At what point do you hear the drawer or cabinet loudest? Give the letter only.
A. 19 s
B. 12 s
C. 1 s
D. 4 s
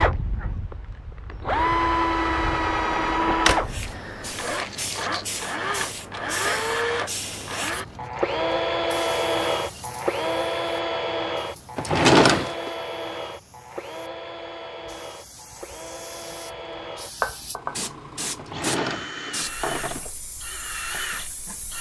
B.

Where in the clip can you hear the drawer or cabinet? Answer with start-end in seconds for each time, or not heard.
2.7-3.6, 11.8-12.7, 18.4-20.1.